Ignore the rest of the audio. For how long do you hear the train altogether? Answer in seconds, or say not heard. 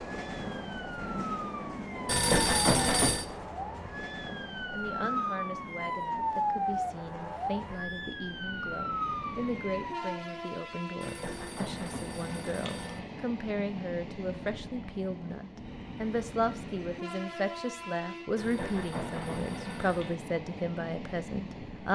22 s.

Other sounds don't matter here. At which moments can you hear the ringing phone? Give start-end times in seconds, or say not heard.
2.0-3.2, 11.0-13.0, 18.4-20.1.